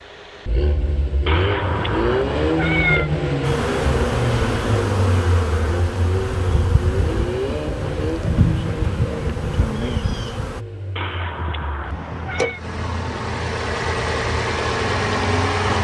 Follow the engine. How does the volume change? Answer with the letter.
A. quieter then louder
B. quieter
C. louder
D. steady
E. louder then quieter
A.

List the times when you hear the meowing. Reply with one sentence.
You can hear the meowing from 1.2 to 3.1 s and from 10.9 to 12.6 s.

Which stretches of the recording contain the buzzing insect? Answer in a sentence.
You can hear the buzzing insect from 3.4 to 10.6 s.